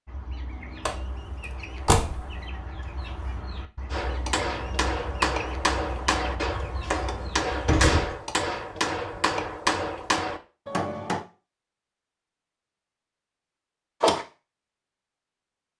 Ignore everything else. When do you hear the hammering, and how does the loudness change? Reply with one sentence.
You can hear the hammering from 3.9 to 11.2 s, at a steady volume.